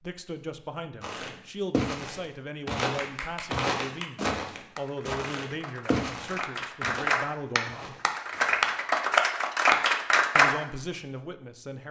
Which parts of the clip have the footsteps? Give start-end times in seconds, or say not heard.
1.0-8.9.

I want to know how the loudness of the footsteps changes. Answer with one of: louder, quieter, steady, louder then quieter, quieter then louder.
quieter.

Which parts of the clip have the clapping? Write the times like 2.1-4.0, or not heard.
2.8-10.6.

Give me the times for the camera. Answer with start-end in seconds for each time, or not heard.
not heard.